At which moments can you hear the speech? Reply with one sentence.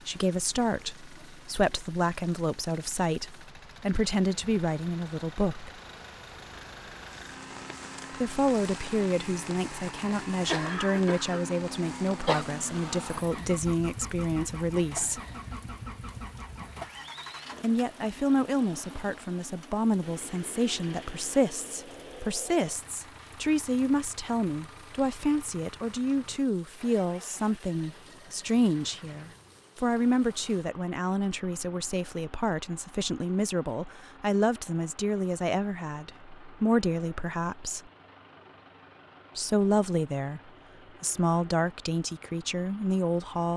The speech can be heard from 0.1 to 5.7 s, from 8.2 to 15.2 s, from 17.6 to 37.8 s, from 39.4 to 40.4 s and from 41.0 to 43.5 s.